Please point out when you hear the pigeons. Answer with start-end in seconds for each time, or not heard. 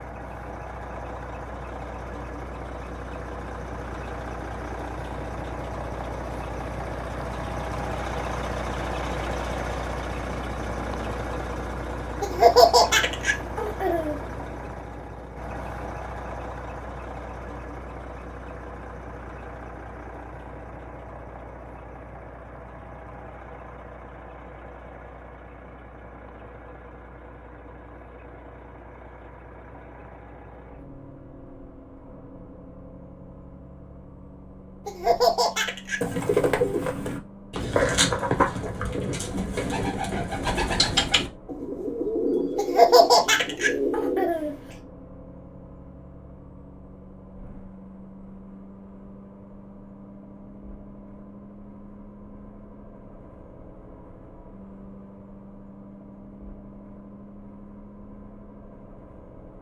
36.0-44.3.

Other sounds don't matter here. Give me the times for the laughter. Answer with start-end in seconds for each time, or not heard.
12.2-14.2, 34.9-36.0, 42.5-44.5.